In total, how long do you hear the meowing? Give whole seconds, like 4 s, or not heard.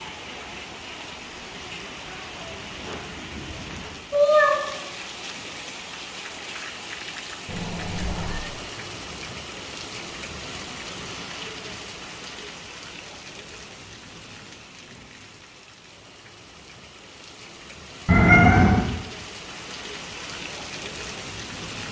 3 s.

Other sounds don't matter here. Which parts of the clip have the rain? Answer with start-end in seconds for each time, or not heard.
0.0-21.8.